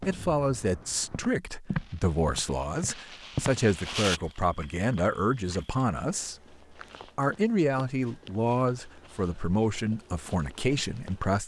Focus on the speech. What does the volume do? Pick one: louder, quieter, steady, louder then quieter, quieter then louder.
steady.